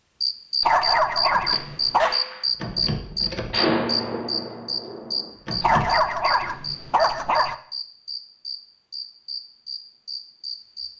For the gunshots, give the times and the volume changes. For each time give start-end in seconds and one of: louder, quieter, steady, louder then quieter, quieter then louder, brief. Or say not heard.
1.3-6.0 louder then quieter.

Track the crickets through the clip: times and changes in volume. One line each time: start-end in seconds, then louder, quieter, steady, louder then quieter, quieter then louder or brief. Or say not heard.
0.2-10.9 quieter.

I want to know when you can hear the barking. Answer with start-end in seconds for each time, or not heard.
0.6-2.1, 5.6-7.5.